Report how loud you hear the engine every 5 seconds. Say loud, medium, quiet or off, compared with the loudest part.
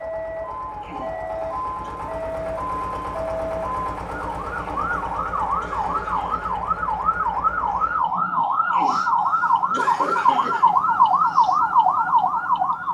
loud, loud, off.